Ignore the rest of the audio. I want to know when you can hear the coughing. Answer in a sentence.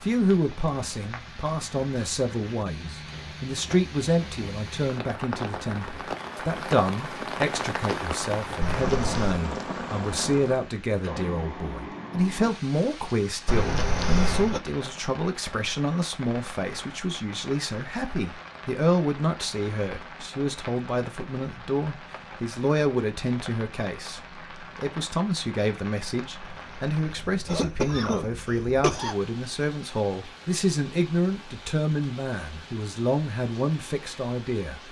The coughing can be heard from 8.6 to 9.4 s, from 13.4 to 14.6 s and from 26.5 to 29.1 s.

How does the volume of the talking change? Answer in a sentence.
The loudness of the talking stays about the same.